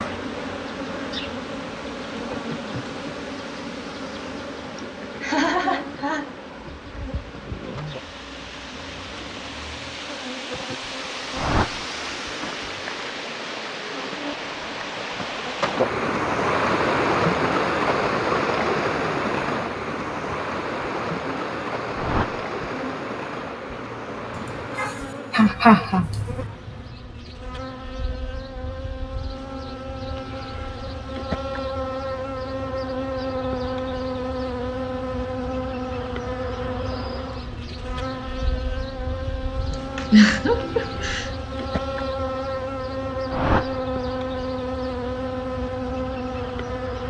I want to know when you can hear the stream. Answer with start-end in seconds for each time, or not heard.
0.0-24.8.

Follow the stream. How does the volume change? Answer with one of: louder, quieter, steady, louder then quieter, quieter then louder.
louder then quieter.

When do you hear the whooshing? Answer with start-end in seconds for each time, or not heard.
11.3-11.8, 21.9-22.4, 43.3-43.8.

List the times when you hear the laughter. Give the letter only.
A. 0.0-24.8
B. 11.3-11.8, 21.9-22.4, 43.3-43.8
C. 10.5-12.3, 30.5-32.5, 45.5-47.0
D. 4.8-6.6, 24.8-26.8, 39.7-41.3
D.